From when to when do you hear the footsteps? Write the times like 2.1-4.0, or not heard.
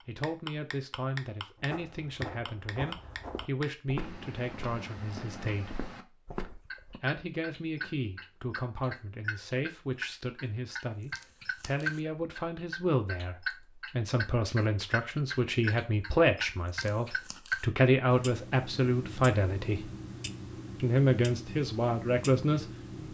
1.6-7.0.